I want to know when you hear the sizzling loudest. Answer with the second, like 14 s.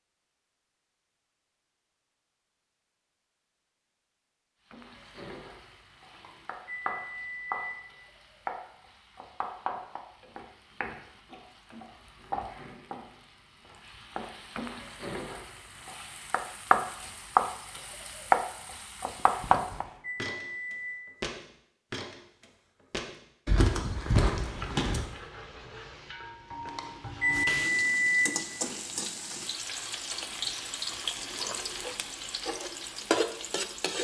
18 s.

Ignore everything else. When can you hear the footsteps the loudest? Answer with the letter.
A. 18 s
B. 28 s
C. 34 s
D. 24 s
D.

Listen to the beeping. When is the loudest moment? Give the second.
28 s.